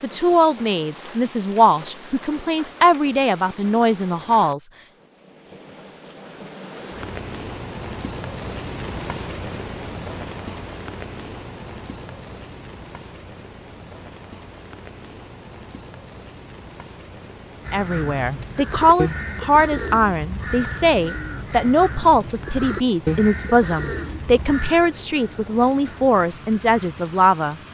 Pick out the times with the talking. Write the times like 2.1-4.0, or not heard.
0.0-4.7, 17.7-27.6.